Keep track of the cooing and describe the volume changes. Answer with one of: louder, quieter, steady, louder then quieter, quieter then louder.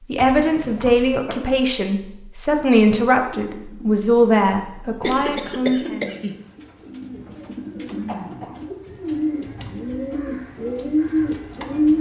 louder.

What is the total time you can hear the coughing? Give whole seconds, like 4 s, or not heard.
3 s.